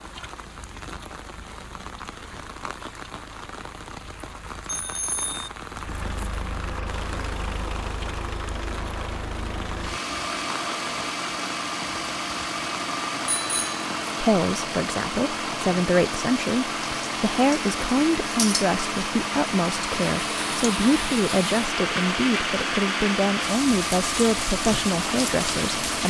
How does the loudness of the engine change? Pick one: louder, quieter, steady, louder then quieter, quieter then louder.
louder.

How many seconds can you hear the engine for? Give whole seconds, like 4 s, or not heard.
26 s.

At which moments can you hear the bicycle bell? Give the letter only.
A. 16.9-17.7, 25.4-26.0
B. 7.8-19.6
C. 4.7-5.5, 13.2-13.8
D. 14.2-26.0
C.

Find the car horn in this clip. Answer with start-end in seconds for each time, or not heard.
not heard.